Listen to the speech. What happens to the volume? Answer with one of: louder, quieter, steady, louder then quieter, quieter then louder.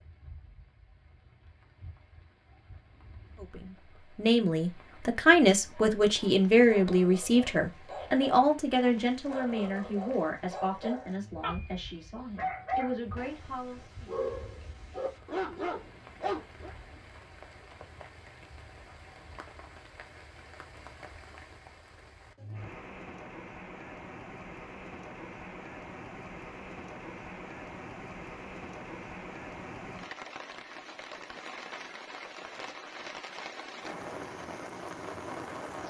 quieter.